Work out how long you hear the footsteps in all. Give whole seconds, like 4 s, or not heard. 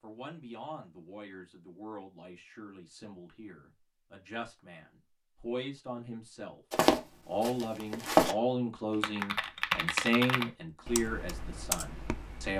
2 s.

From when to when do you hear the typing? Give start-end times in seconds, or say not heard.
8.9-12.5.